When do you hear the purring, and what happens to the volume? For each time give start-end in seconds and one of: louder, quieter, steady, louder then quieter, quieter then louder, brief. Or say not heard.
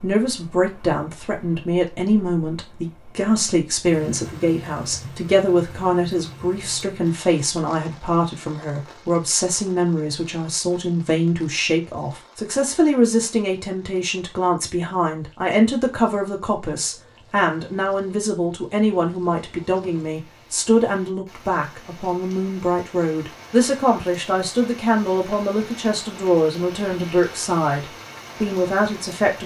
not heard.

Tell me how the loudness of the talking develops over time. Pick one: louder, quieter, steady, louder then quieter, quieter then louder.
steady.